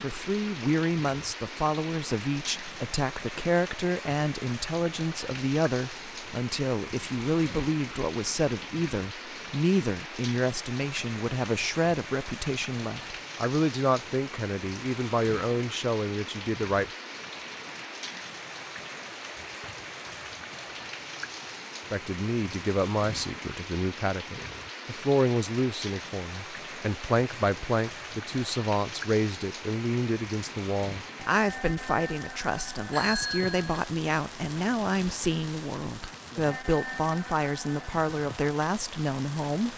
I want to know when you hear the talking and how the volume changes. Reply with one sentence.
You can hear the talking from 0.0 to 16.9 s, at a steady volume; and from 21.9 to 39.7 s, at a steady volume.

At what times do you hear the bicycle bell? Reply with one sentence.
The bicycle bell can be heard from 32.9 to 33.8 s.